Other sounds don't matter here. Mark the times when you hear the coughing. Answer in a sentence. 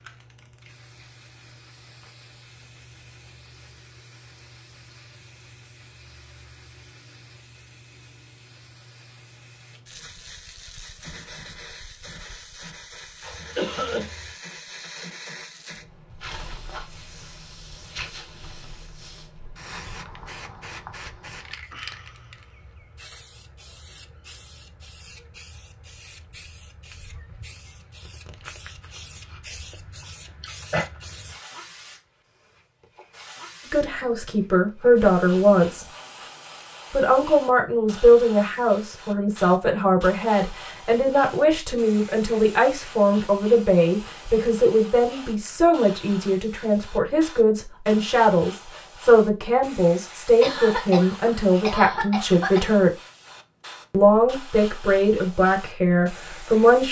You can hear the coughing from 13.2 to 14.3 s, from 30.4 to 30.9 s and from 50.4 to 52.8 s.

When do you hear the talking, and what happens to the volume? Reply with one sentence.
The talking can be heard briefly from 33.6 to 35.9 s; from 36.9 to 52.9 s, at a steady volume; and briefly from 53.9 to 56.8 s.